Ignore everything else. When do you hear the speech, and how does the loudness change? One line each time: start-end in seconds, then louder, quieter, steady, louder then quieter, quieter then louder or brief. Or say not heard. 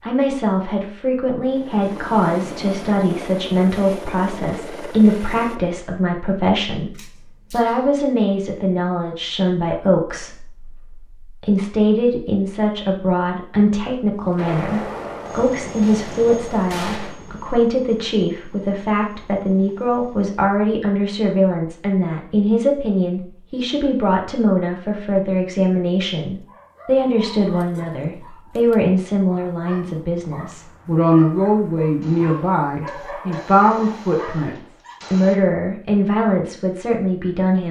0.0-37.6 steady.